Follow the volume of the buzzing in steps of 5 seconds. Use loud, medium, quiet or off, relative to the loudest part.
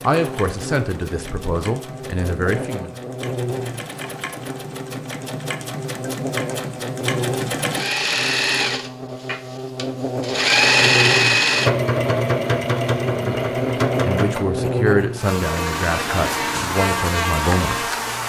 medium, medium, loud, loud.